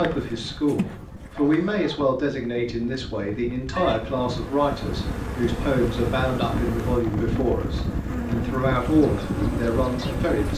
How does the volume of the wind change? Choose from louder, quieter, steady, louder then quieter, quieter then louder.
louder.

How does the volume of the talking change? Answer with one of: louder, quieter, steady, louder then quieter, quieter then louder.
steady.